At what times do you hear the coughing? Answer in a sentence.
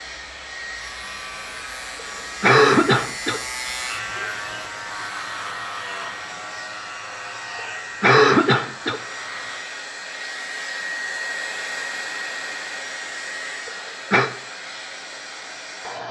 You can hear the coughing from 2.4 to 3.4 s, from 8.0 to 9.0 s and from 13.7 to 14.3 s.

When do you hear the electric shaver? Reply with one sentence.
You can hear the electric shaver from 0.0 to 9.7 s.